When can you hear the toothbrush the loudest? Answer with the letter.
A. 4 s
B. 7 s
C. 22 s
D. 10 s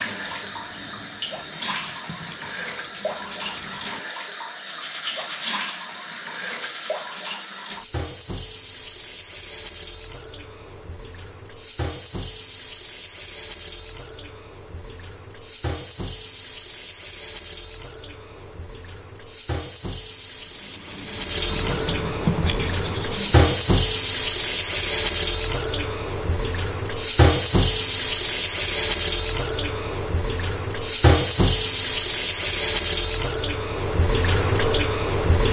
C.